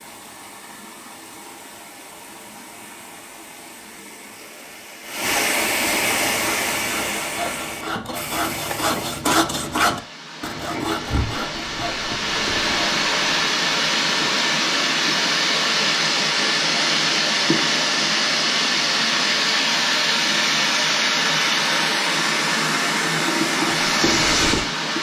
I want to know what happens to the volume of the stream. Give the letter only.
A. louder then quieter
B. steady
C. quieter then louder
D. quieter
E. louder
E.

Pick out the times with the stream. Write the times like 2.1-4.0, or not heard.
0.0-24.9.